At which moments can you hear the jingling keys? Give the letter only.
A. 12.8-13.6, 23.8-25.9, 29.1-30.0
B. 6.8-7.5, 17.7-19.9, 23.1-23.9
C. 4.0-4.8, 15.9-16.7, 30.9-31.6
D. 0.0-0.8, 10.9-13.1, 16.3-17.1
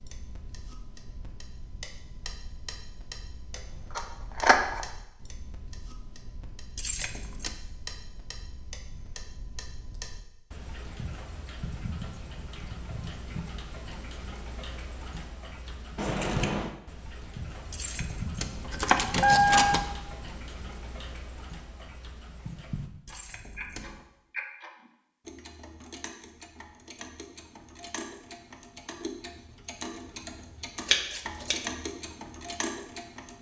B.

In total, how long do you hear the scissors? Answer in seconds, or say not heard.
2 s.